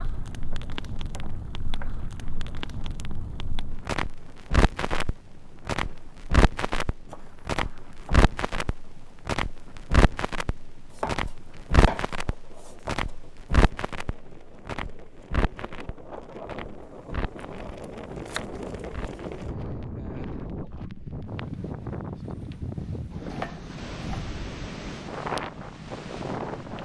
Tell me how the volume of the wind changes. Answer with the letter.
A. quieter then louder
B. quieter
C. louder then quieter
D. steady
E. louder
E.